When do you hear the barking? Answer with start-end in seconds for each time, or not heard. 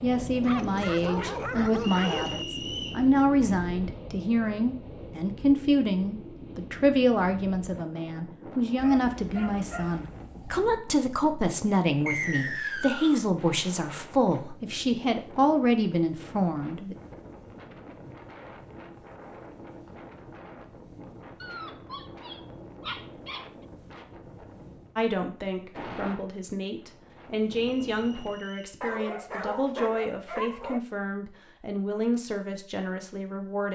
0.4-2.5, 8.8-10.7, 21.4-23.5, 28.8-30.8.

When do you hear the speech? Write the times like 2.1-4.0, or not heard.
0.0-16.9, 24.9-33.7.